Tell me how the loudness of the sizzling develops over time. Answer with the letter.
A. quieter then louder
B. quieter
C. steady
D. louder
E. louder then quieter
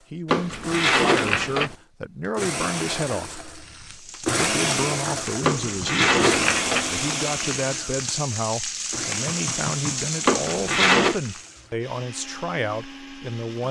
D.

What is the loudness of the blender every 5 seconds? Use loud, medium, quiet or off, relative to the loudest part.
loud, loud, quiet.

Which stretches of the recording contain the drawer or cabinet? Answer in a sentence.
The drawer or cabinet can be heard from 0.2 to 1.8 s, from 5.4 to 6.9 s and from 10.2 to 11.2 s.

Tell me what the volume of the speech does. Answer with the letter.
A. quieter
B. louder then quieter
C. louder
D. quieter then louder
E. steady
E.